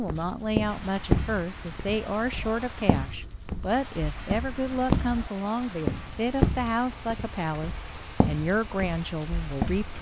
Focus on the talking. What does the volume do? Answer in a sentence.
The volume of the talking stays about the same.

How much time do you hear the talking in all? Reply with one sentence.
The talking can be heard for 10 seconds in total.